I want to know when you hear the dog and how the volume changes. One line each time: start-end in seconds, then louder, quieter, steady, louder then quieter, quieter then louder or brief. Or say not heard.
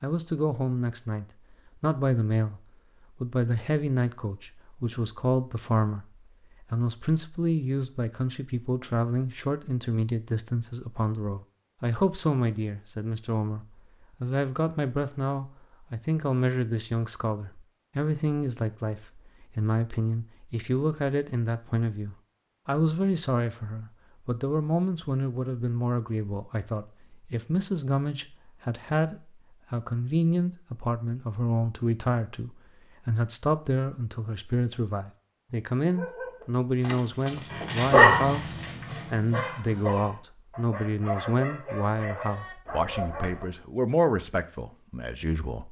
35.9-43.5 louder then quieter.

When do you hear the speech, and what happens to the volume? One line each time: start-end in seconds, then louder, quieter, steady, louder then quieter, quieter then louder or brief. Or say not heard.
0.0-45.6 steady.